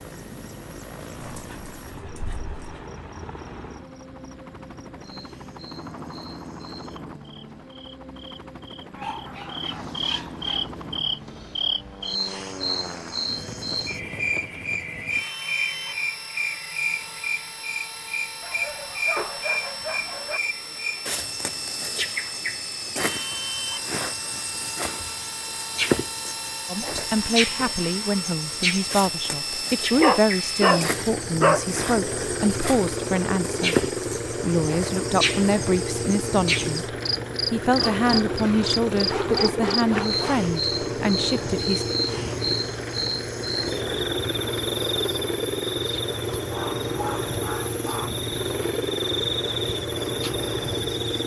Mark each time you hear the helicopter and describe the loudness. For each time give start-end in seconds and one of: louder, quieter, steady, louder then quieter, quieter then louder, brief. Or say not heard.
0.0-51.2 louder.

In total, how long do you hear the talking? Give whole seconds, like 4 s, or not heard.
15 s.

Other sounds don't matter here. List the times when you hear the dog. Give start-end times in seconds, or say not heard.
1.2-2.9, 8.9-10.7, 18.4-20.4, 29.9-31.6, 37.8-40.5, 46.4-48.1.